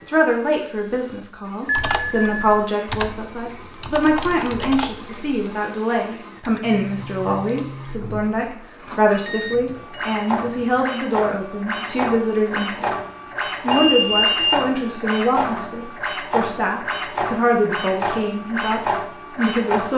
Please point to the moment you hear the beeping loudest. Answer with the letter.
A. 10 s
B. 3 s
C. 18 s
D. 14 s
D.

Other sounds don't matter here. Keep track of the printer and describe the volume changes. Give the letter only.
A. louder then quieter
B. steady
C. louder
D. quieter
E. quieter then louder
C.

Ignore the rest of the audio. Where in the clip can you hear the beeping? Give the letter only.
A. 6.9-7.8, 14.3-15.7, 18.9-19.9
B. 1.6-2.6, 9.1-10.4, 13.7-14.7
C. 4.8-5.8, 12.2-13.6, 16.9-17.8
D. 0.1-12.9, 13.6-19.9
B.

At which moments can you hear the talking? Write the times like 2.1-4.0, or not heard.
0.1-12.9, 13.6-19.9.